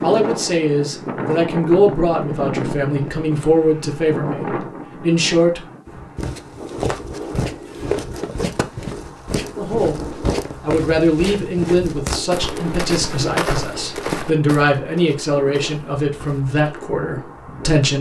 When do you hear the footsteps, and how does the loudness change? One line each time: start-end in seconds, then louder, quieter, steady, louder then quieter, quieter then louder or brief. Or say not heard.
6.2-16.6 quieter.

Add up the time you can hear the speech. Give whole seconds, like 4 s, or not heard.
14 s.